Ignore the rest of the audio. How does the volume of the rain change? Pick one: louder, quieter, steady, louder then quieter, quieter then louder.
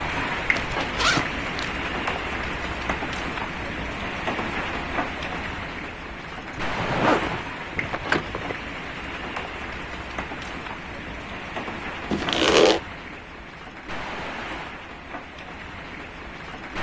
quieter.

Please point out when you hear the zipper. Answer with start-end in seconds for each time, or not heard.
0.6-1.8, 6.5-8.6, 12.1-12.8.